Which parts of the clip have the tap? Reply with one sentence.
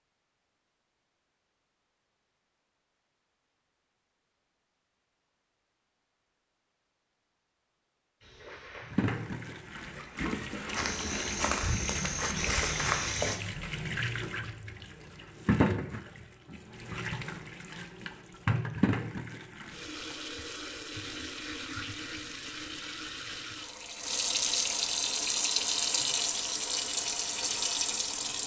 You can hear the tap from 8.8 to 28.4 s.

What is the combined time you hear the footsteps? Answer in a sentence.
You can hear the footsteps for 5 seconds altogether.